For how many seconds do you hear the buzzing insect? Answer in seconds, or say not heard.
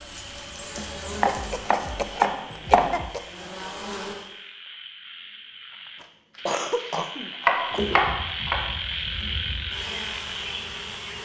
8 s.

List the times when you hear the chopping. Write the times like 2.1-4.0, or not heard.
0.8-3.1, 6.3-8.7.